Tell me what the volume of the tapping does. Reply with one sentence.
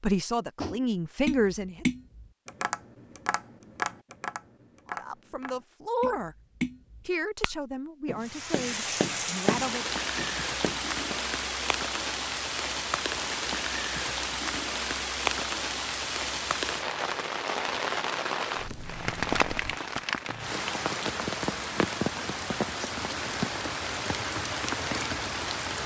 The loudness of the tapping goes down, then up.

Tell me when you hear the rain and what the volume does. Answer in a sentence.
You can hear the rain from 8.2 to 25.8 s, at a steady volume.